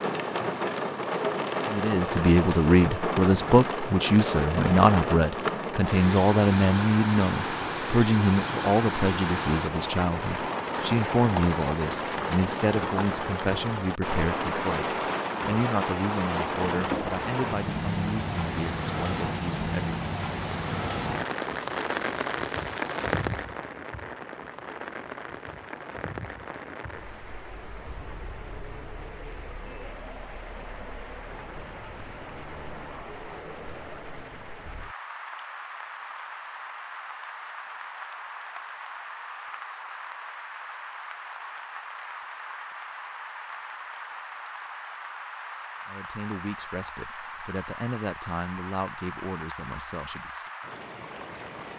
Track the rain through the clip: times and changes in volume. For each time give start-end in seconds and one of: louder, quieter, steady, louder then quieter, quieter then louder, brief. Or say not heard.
0.0-51.7 quieter.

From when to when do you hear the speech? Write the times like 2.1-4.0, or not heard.
1.7-19.9, 45.9-50.4.